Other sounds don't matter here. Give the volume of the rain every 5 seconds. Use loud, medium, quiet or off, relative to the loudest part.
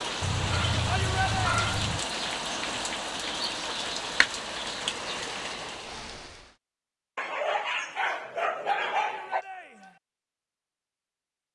loud, medium, off.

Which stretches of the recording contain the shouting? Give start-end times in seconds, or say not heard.
0.8-1.6, 8.9-10.0.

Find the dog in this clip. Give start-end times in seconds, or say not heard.
0.2-2.0, 7.2-9.4.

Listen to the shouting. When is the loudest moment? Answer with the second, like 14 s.
1 s.